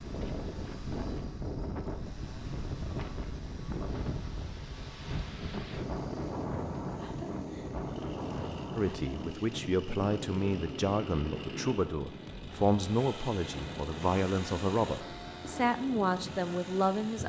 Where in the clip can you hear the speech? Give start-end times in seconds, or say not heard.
8.8-17.2.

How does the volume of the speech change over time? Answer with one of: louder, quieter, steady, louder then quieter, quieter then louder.
steady.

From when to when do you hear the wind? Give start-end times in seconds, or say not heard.
0.0-17.2.